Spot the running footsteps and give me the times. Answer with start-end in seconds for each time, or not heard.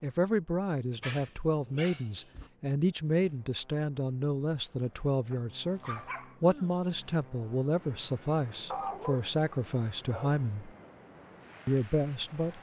not heard.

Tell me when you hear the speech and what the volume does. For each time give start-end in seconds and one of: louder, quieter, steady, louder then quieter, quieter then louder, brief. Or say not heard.
0.0-10.7 steady
11.7-12.5 brief.